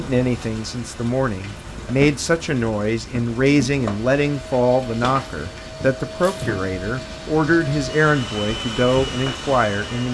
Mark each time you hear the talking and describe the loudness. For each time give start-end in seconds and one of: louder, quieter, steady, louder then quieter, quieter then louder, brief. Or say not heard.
0.0-10.0 steady.